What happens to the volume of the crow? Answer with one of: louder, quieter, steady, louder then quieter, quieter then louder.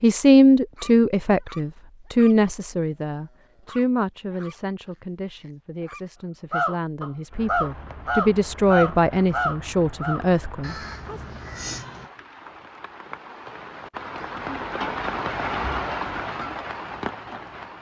quieter.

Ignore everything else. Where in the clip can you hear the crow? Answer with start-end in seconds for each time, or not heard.
6.5-12.1.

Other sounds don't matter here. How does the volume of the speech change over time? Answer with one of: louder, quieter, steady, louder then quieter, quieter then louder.
quieter then louder.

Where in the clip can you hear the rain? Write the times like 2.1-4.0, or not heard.
7.3-17.7.